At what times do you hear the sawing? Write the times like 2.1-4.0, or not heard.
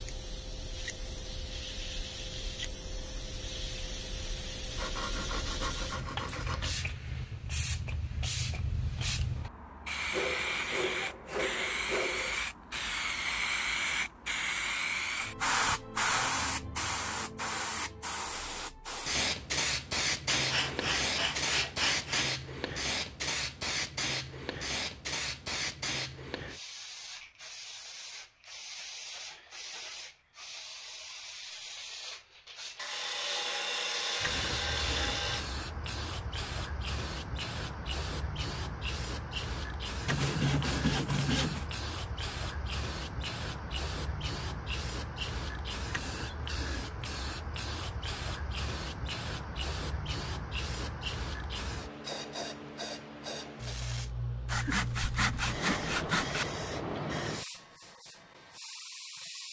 4.8-6.8, 10.1-12.4, 20.3-22.3, 32.8-35.5, 40.0-41.7, 54.5-56.5.